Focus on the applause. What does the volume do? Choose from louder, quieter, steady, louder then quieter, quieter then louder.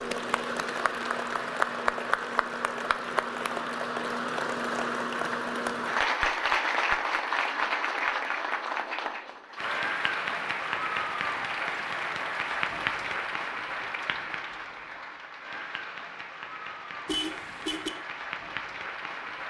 quieter.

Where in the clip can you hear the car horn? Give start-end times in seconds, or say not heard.
17.1-17.9.